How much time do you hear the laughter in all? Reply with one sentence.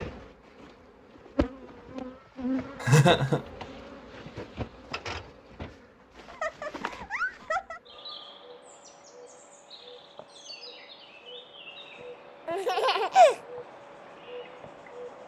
The laughter can be heard for 3 seconds in total.